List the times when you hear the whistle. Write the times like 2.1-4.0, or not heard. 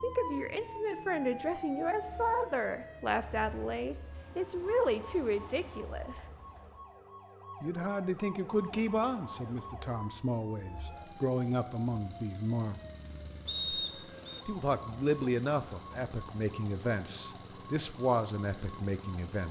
13.4-14.4.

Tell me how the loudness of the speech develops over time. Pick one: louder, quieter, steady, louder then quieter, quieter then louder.
steady.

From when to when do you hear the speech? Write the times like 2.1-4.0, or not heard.
0.0-6.2, 7.6-12.8, 14.4-19.4.